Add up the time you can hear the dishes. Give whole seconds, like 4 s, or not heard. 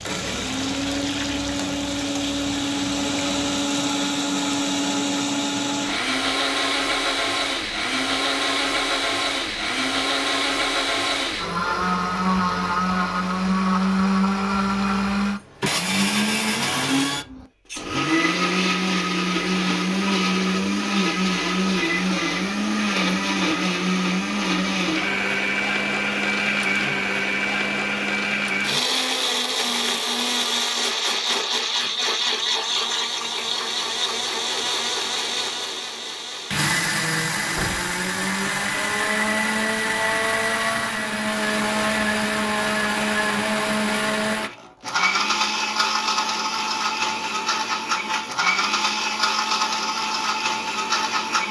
not heard.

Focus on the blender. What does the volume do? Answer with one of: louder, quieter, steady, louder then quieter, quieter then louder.
steady.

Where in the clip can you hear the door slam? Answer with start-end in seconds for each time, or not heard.
37.5-38.0.